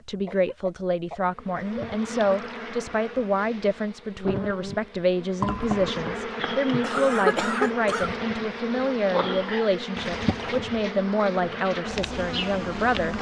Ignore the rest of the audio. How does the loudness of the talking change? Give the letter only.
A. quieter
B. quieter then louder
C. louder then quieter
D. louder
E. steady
E.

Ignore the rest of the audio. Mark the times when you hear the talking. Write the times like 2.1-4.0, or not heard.
0.1-13.1.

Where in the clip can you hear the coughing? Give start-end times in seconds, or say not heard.
0.2-1.8, 6.8-8.1.